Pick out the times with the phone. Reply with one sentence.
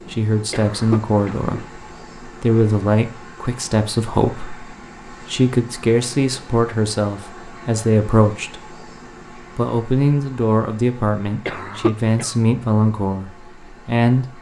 The phone can't be heard in this clip.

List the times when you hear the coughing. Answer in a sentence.
You can hear the coughing from 0.5 to 1.5 s and from 11.4 to 12.3 s.